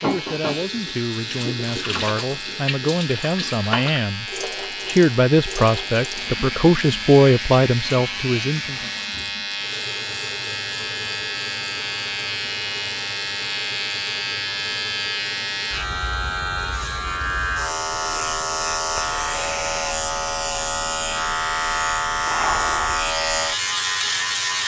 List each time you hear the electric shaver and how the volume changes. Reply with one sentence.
You can hear the electric shaver from 0.0 to 24.6 s, getting louder.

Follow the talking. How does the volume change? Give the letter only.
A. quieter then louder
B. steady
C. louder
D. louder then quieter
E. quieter
C.